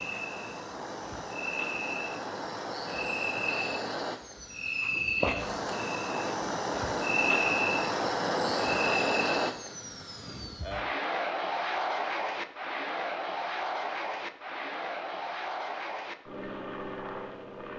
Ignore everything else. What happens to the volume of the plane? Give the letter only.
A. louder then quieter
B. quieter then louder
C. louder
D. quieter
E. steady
A.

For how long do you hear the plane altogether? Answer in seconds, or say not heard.
18 s.